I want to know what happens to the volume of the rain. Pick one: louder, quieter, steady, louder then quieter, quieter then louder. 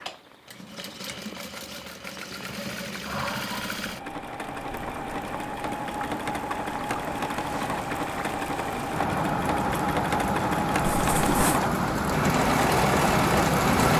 louder.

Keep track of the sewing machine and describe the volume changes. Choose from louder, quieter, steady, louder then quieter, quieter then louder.
louder.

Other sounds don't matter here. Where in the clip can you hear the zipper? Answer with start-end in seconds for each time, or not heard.
10.9-11.6.